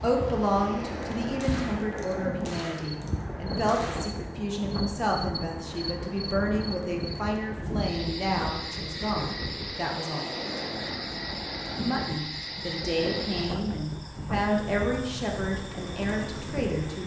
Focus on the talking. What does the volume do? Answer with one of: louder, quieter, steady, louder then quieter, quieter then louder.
steady.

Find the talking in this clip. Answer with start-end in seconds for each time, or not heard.
0.0-10.3, 11.8-17.0.